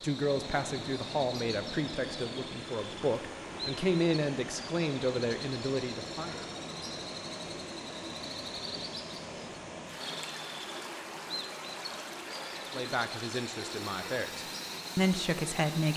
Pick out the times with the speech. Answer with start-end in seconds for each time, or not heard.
0.0-6.3, 12.7-15.9.